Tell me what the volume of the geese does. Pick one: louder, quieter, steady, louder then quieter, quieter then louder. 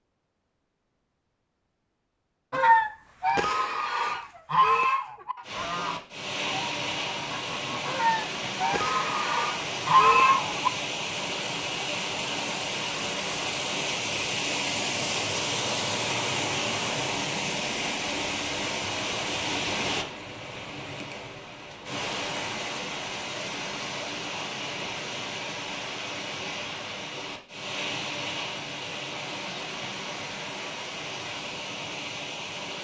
quieter then louder.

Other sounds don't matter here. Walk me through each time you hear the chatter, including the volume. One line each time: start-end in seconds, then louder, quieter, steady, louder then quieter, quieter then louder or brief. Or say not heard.
not heard.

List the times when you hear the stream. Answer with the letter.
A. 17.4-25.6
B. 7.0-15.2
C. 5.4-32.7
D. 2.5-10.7
C.